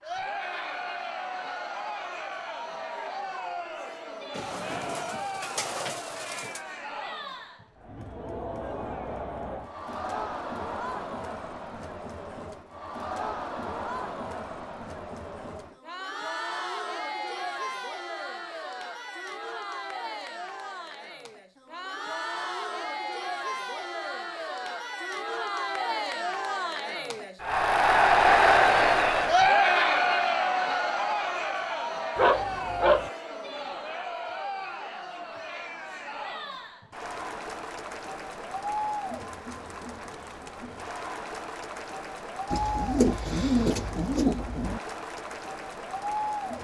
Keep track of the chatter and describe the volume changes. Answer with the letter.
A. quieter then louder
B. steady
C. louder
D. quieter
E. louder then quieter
E.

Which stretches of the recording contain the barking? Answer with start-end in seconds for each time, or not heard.
32.1-33.1.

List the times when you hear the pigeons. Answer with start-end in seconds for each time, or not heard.
4.3-6.7, 42.5-44.8.